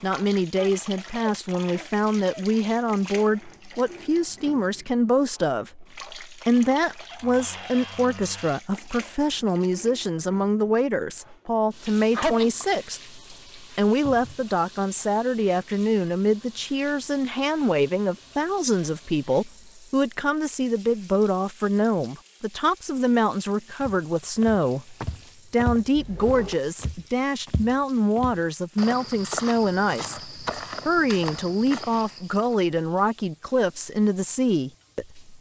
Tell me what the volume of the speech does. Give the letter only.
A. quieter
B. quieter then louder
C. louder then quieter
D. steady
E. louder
D.